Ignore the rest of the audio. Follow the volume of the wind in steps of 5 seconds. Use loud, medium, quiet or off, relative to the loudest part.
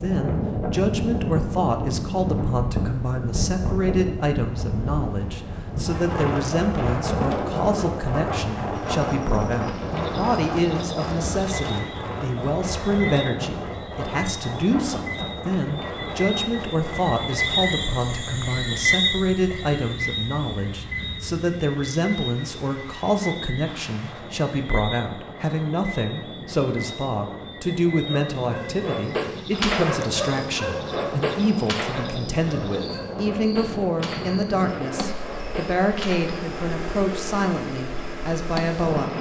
loud, loud, loud, medium, quiet, medium, medium, medium.